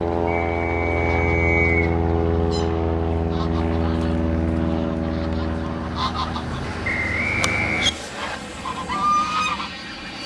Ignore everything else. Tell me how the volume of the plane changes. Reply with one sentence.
The loudness of the plane goes down.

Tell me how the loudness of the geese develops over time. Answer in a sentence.
The loudness of the geese goes up.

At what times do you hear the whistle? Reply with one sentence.
You can hear the whistle from 0.2 to 1.9 s and from 6.8 to 8.3 s.